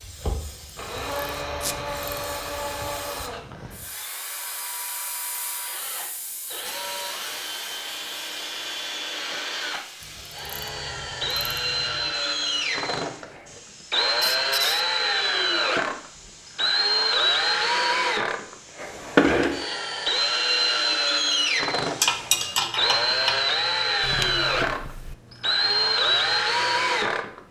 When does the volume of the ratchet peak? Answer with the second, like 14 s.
22 s.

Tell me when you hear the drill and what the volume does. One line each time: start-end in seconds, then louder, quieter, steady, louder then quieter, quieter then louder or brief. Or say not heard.
0.0-27.4 louder.